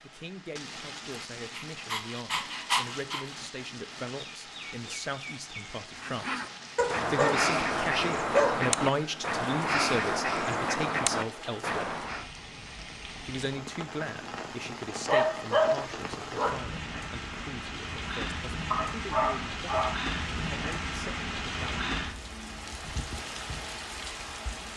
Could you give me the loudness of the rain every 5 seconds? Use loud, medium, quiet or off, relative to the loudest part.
medium, medium, medium, loud, loud.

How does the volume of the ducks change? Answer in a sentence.
The loudness of the ducks stays about the same.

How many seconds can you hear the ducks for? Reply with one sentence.
The ducks can be heard for 6 seconds in total.